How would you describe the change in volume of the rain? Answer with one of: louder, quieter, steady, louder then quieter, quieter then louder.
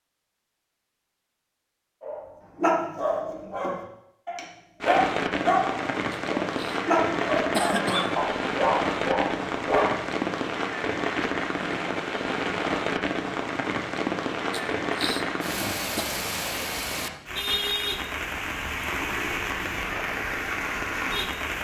steady.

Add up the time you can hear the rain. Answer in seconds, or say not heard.
17 s.